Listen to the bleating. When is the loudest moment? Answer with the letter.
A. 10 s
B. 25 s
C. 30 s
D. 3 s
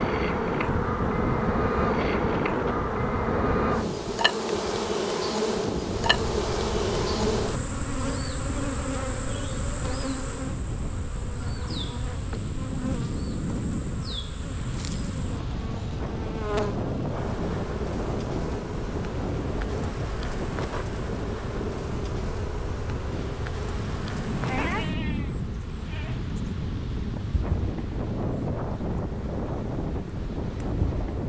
B.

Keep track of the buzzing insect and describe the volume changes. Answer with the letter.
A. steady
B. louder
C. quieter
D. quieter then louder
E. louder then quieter
C.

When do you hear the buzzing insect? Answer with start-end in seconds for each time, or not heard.
0.0-31.2.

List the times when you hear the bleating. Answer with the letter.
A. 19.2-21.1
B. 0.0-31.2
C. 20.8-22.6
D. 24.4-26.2
D.